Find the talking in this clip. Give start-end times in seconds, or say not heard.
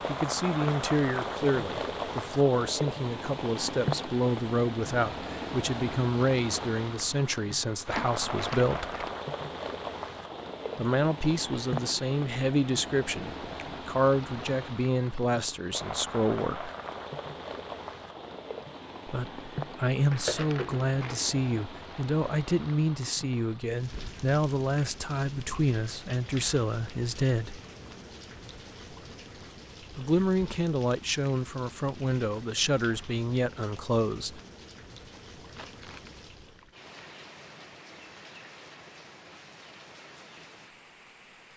0.1-8.9, 10.8-16.8, 19.1-27.6, 29.9-34.4.